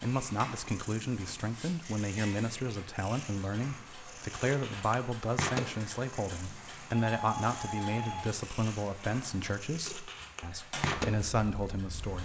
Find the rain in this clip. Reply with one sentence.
You can't hear the rain here.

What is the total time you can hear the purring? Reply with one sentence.
You can hear the purring for 12 seconds altogether.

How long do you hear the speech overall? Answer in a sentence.
The speech can be heard for 12 seconds in total.